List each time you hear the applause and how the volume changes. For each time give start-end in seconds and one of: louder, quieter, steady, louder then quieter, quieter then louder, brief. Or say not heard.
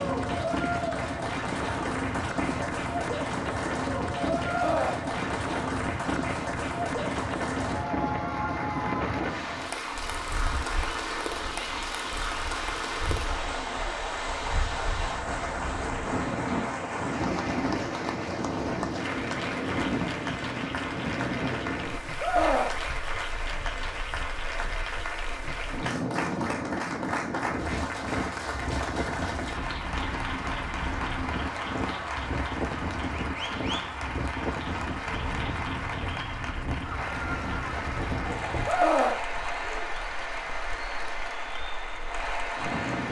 0.0-43.0 steady.